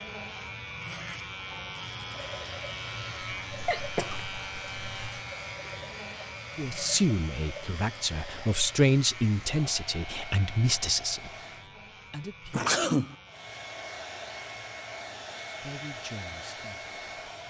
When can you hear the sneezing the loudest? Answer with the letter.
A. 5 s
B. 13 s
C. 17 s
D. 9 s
B.